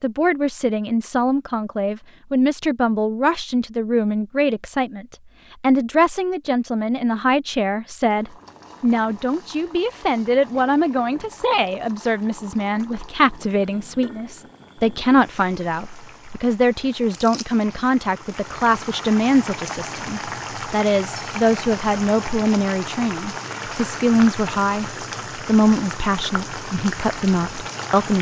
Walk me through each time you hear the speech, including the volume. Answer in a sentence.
The speech can be heard from 0.0 to 28.1 s, at a steady volume.